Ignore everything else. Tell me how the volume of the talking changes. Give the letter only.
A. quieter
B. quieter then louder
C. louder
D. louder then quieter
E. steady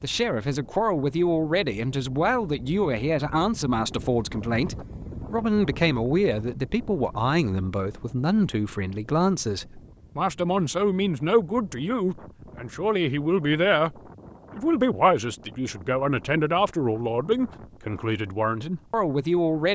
E.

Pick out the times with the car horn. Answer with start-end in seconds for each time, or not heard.
not heard.